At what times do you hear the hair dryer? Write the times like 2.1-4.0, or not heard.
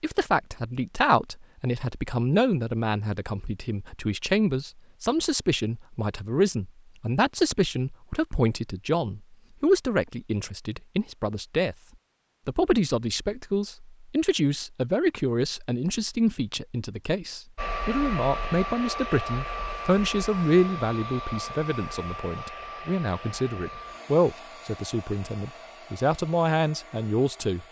17.6-27.6.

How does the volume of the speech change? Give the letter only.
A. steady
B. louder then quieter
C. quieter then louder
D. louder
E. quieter
A.